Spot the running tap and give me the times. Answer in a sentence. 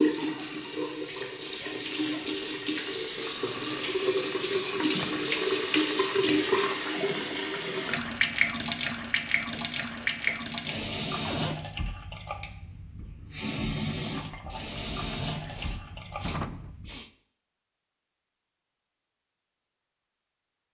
The running tap can be heard from 0.0 to 17.0 s.